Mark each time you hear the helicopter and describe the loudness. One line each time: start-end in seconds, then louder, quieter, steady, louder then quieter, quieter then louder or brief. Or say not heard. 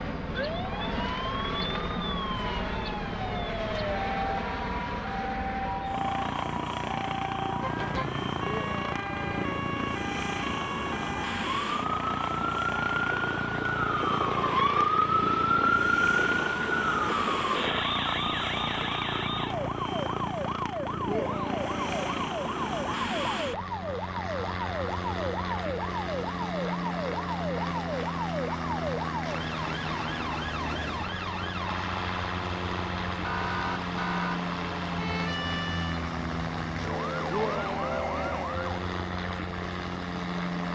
0.0-40.7 steady.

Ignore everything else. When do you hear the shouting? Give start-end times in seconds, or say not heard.
8.4-9.5, 21.1-22.2, 37.3-38.6.